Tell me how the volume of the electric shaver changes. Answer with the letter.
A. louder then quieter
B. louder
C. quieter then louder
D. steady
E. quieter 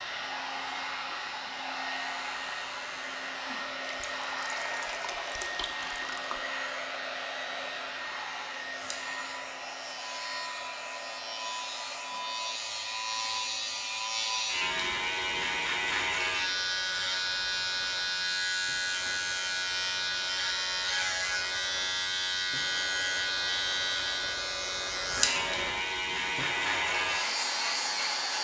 B.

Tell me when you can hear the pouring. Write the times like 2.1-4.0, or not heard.
3.9-6.5.